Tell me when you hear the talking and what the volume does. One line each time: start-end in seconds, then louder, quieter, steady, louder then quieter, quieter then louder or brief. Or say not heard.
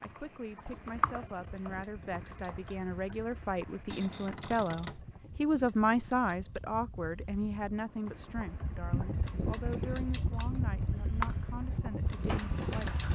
0.0-13.1 louder then quieter.